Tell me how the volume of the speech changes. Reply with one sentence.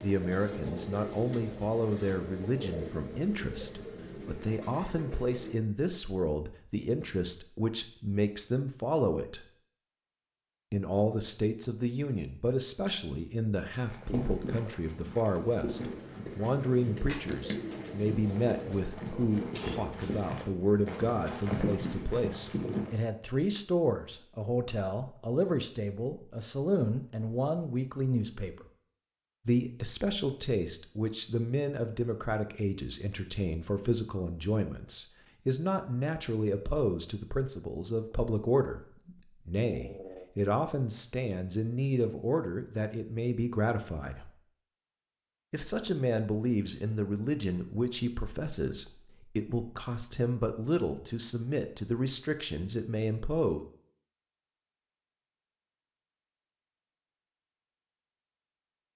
The loudness of the speech stays about the same.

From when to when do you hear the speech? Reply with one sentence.
The speech can be heard from 0.0 to 9.4 s, from 10.7 to 28.6 s, from 29.4 to 44.3 s and from 45.5 to 53.6 s.